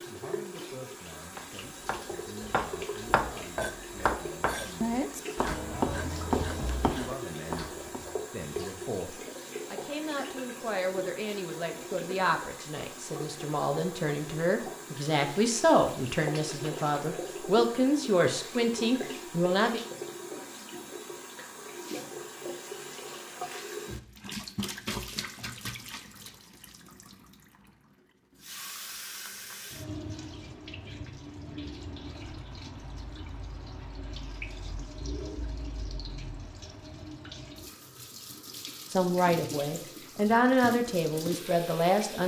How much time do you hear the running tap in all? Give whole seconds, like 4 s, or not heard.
42 s.